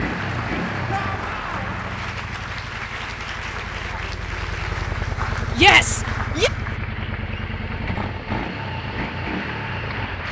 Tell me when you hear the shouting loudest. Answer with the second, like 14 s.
6 s.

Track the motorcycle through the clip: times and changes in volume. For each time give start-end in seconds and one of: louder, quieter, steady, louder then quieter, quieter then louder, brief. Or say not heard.
0.0-10.2 quieter then louder.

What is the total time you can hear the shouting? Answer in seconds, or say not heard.
2 s.